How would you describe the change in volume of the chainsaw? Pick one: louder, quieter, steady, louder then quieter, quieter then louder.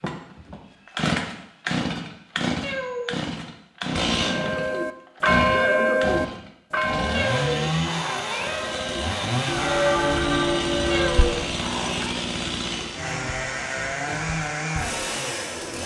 steady.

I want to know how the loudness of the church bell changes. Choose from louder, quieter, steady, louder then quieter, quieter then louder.
quieter then louder.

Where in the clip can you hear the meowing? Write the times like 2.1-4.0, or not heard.
2.6-3.2, 7.1-8.8, 10.9-12.2.